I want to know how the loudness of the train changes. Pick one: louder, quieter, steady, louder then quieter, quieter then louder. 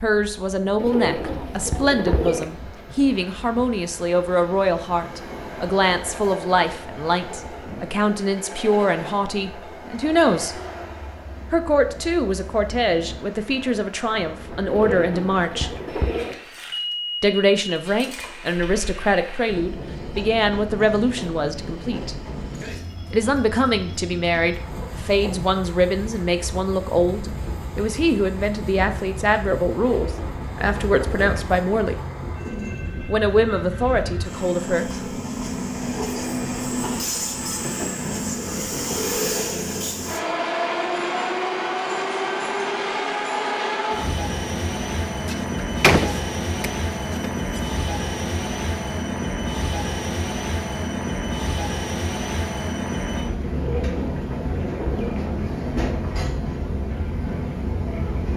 louder.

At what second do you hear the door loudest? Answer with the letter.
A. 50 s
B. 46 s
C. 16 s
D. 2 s
B.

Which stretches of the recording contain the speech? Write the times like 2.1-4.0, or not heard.
0.0-10.6, 11.5-15.7, 17.2-22.1, 23.1-32.0, 33.0-34.9.